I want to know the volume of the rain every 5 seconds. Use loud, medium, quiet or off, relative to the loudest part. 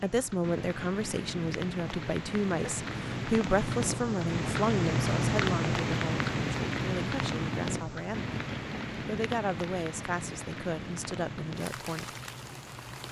loud, loud, medium.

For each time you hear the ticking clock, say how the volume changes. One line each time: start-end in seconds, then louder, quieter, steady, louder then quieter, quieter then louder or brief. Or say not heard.
0.0-13.0 louder then quieter.